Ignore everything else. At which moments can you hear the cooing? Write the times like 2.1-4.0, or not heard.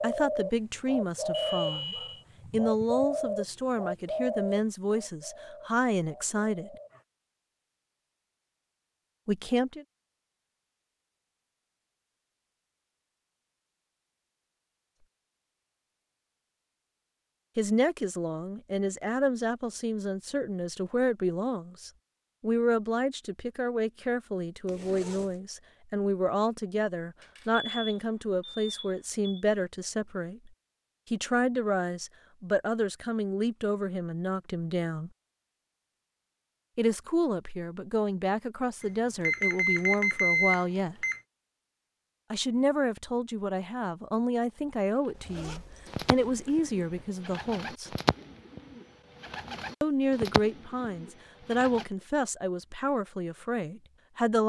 0.0-7.0, 44.8-51.9.